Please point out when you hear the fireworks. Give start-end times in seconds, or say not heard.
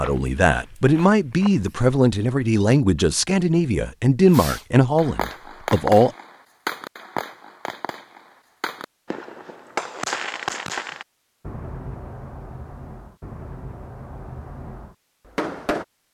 4.2-15.8.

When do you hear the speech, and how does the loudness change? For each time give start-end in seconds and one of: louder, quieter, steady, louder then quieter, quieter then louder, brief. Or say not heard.
0.0-6.1 steady.